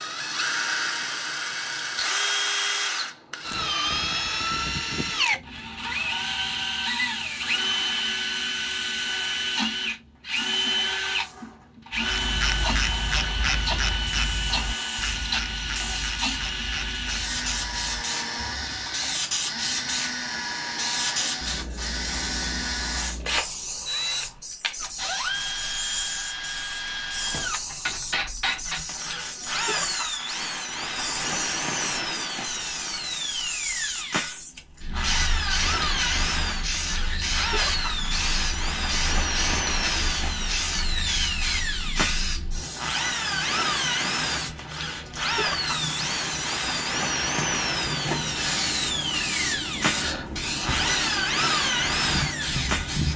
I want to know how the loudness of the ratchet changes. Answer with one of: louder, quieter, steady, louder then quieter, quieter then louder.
quieter.